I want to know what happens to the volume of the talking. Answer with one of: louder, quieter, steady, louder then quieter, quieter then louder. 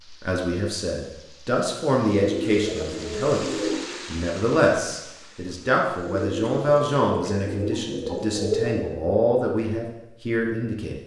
steady.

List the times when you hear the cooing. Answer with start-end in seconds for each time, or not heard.
2.1-4.0, 6.0-8.8.